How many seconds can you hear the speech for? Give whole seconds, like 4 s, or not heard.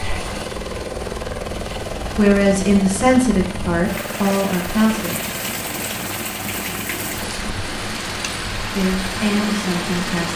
5 s.